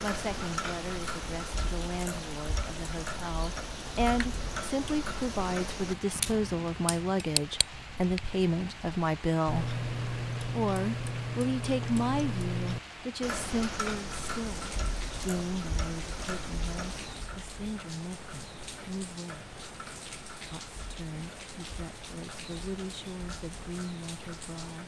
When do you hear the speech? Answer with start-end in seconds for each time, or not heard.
0.0-9.7, 10.6-19.5, 20.5-24.8.